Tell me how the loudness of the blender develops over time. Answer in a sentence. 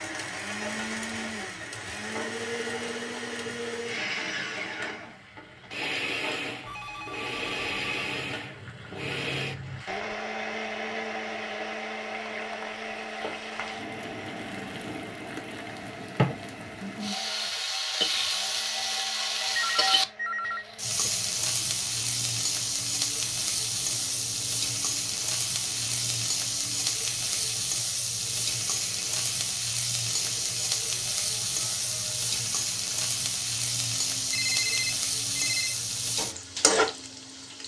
The loudness of the blender goes down.